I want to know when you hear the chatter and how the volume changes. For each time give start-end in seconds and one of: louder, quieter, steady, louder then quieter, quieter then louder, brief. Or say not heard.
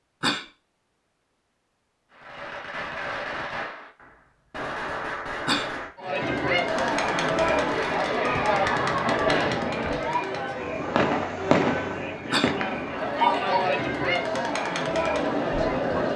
6.0-16.1 quieter then louder.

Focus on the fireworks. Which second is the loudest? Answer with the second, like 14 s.
12 s.